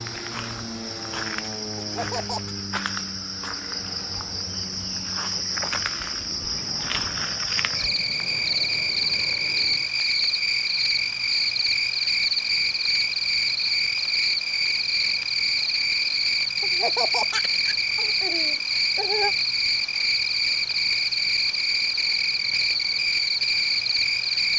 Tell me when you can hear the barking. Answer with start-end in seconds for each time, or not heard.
not heard.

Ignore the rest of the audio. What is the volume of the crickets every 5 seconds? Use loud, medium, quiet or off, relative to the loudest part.
medium, loud, loud, loud, loud.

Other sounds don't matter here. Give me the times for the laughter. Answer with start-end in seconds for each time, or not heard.
1.8-2.5, 16.6-19.4.